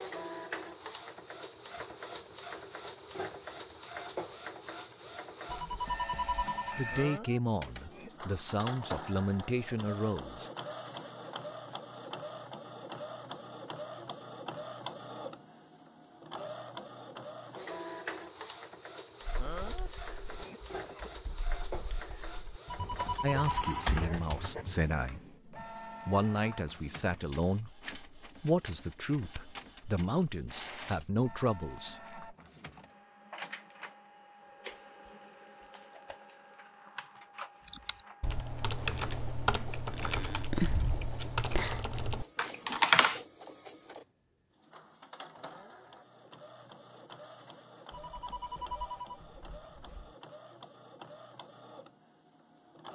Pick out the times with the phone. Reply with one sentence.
You can hear the phone from 5.5 to 6.8 s, from 22.6 to 23.8 s and from 47.9 to 50.1 s.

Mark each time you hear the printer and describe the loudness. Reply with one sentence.
You can hear the printer from 0.0 to 52.9 s, getting quieter.